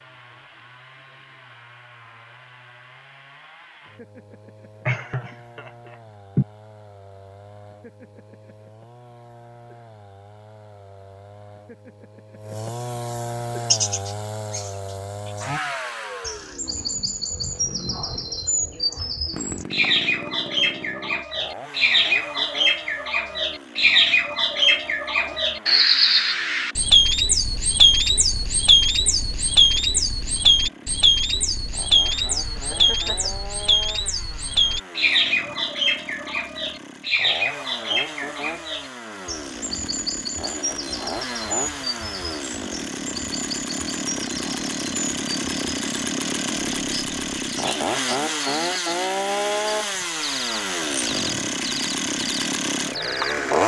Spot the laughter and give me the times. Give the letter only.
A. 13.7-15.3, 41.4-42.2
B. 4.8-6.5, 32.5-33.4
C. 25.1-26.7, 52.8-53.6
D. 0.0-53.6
B.